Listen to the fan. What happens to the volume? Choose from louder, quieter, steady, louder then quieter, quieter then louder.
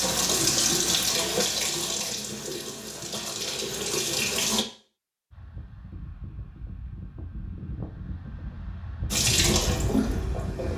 louder.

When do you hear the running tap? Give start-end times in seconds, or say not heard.
0.0-4.7, 9.1-10.7.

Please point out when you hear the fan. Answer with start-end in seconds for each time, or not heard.
5.3-10.7.